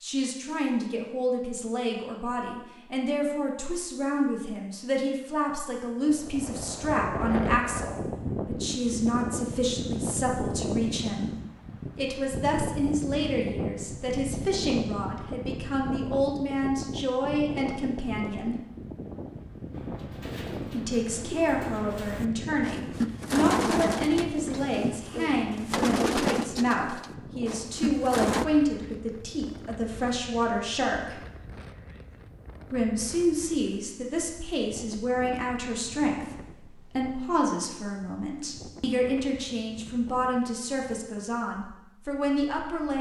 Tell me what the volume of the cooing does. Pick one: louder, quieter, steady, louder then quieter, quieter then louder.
louder then quieter.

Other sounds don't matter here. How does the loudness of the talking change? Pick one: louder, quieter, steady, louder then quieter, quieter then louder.
steady.